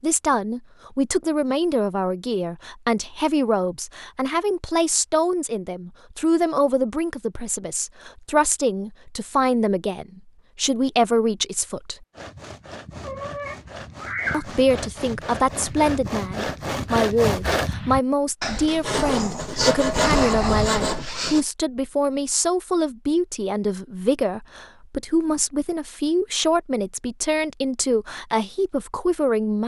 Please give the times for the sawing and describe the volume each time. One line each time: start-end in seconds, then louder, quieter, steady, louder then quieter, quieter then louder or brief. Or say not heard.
12.1-21.4 louder.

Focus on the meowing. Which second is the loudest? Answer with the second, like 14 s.
14 s.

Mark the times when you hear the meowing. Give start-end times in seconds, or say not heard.
13.0-14.6.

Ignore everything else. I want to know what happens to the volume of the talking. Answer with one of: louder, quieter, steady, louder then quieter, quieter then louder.
steady.